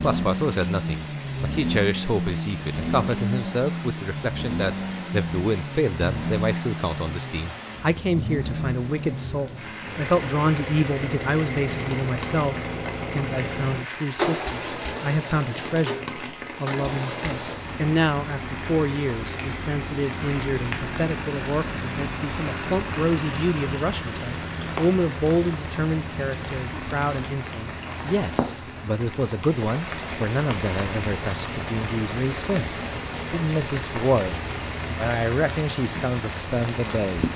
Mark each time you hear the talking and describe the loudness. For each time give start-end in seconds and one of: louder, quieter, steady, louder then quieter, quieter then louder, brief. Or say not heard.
0.0-37.2 steady.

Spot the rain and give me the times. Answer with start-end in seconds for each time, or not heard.
0.2-37.3.